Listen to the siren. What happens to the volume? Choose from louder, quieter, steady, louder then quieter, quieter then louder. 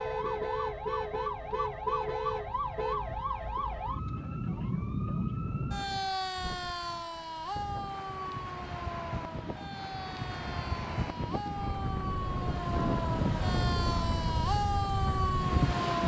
quieter then louder.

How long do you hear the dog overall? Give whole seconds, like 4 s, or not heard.
not heard.